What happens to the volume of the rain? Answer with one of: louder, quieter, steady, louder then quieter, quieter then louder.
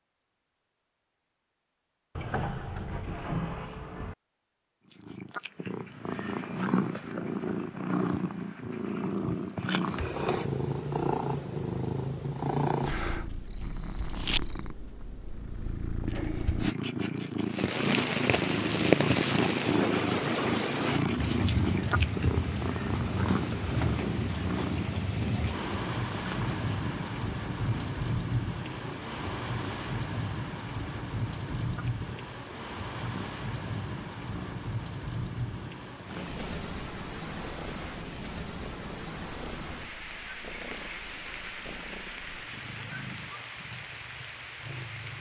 quieter.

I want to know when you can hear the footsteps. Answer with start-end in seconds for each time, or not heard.
not heard.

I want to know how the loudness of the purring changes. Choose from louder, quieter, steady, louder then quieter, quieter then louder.
quieter.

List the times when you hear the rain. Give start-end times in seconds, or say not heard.
17.4-45.1.